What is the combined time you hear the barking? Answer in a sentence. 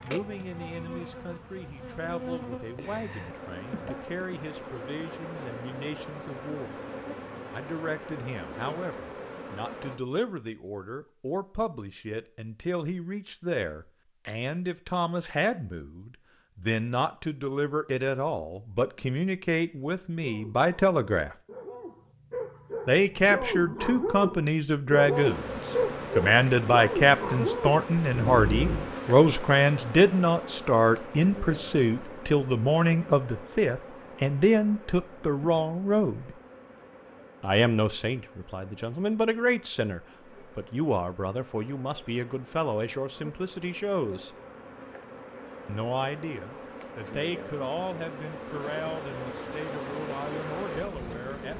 You can hear the barking for 9 seconds altogether.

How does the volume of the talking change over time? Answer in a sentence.
The loudness of the talking goes up, then down.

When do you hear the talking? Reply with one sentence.
You can hear the talking from 0.0 to 6.8 s, from 7.5 to 21.4 s, from 22.9 to 36.4 s, from 37.4 to 44.3 s and from 45.6 to 51.5 s.